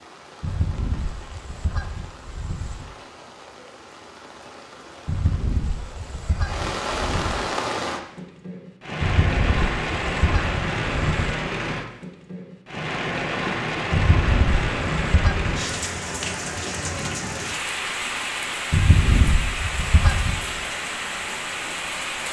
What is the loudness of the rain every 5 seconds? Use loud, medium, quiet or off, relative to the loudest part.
quiet, loud, loud, loud, loud.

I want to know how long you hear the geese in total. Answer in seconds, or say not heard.
11 s.